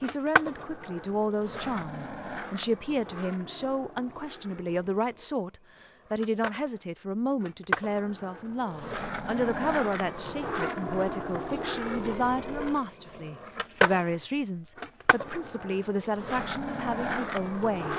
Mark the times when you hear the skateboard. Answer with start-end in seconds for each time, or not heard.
0.0-17.9.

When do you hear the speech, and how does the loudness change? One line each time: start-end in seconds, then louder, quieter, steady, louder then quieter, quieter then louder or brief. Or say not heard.
0.0-17.9 steady.